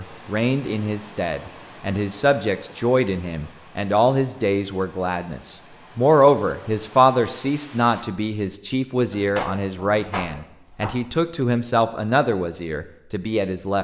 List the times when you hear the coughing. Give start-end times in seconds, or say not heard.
not heard.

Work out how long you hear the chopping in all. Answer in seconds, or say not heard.
2 s.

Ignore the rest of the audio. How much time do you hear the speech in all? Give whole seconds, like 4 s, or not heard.
14 s.